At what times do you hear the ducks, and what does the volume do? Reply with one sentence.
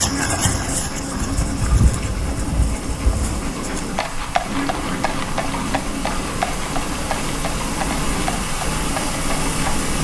The ducks can be heard from 0.0 to 10.0 s, at a steady volume.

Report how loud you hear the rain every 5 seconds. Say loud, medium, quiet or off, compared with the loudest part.
medium, loud.